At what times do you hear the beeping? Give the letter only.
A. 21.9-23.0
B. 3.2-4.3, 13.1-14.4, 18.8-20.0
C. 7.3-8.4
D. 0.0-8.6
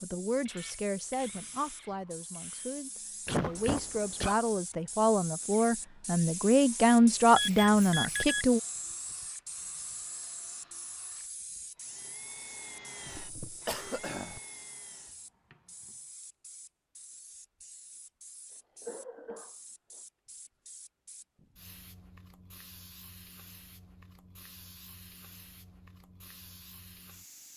C.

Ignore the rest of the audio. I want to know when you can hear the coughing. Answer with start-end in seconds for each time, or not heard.
3.2-4.3, 13.1-14.4, 18.8-20.0.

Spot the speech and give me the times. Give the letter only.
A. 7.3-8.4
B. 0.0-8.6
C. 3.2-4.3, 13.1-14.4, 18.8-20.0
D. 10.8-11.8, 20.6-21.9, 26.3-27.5
B.